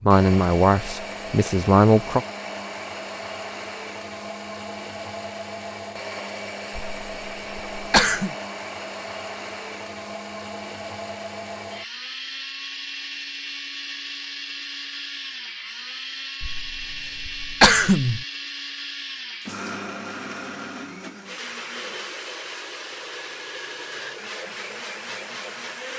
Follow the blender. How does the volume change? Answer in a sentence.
The loudness of the blender stays about the same.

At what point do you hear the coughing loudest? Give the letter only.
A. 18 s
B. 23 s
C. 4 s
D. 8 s
A.